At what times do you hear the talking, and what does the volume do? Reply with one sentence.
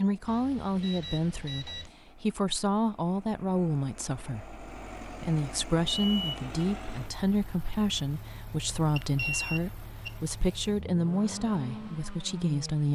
You can hear the talking from 0.0 to 12.9 s, at a steady volume.